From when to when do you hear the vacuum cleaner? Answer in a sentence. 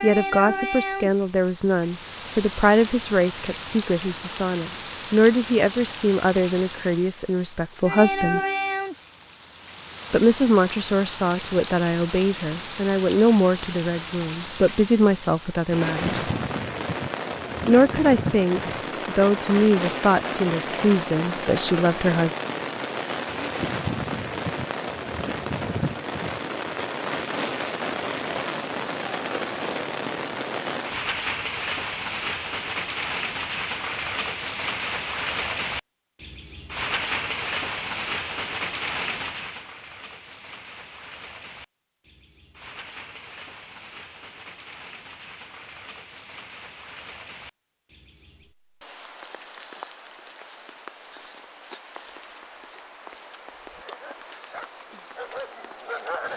You can't hear the vacuum cleaner here.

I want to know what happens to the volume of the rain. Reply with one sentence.
The loudness of the rain goes down.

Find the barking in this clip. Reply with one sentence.
You can hear the barking from 53.7 to 56.3 s.